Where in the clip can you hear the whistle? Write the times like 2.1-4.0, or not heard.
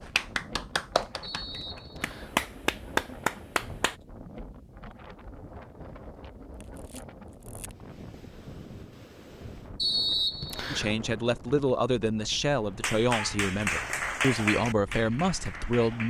1.2-2.4, 9.8-10.9.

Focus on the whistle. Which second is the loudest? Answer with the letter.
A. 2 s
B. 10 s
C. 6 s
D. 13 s
B.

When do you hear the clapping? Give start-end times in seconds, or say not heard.
0.0-4.0, 12.8-16.0.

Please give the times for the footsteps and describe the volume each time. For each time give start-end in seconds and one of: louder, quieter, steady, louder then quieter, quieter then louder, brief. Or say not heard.
not heard.